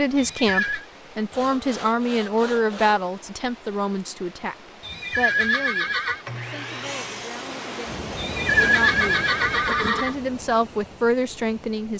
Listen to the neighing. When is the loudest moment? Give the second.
9 s.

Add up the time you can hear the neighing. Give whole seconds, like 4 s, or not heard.
4 s.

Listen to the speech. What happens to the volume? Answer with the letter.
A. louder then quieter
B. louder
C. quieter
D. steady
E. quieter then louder
E.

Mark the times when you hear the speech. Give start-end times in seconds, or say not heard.
0.0-11.9.